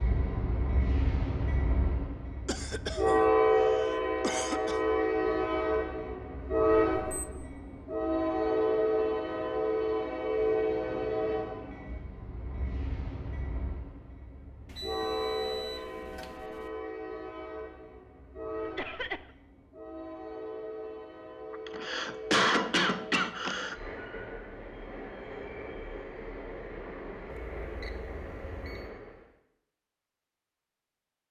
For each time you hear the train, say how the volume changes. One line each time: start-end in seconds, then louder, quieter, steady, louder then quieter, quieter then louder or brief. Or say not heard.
0.0-29.2 quieter.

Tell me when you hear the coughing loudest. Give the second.
22 s.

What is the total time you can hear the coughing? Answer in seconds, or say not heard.
5 s.